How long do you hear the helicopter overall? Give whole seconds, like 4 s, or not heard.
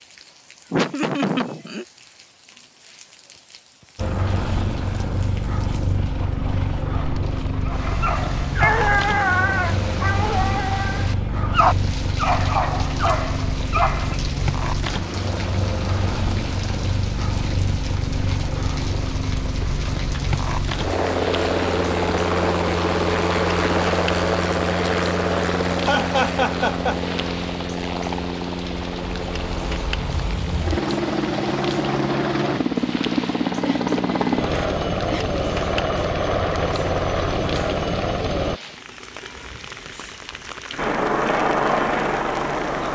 37 s.